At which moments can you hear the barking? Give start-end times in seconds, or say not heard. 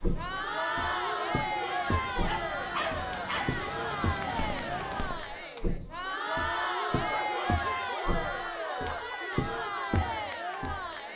2.1-3.6, 7.1-9.3.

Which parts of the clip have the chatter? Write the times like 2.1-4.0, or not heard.
0.0-11.1.